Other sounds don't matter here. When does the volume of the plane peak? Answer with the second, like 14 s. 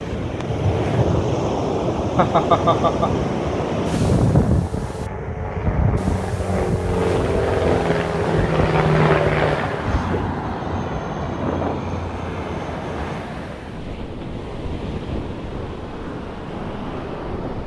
9 s.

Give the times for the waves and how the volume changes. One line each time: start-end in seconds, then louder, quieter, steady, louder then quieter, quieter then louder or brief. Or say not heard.
0.0-17.6 quieter.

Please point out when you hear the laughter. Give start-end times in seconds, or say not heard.
2.1-3.2.